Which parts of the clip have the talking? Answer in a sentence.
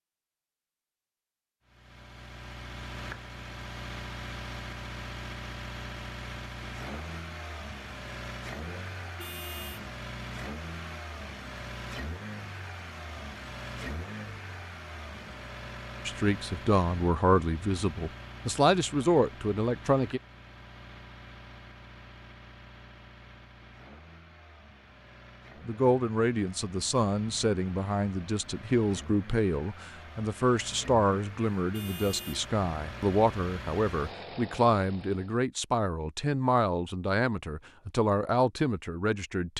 You can hear the talking from 16.1 to 20.2 s and from 25.6 to 39.5 s.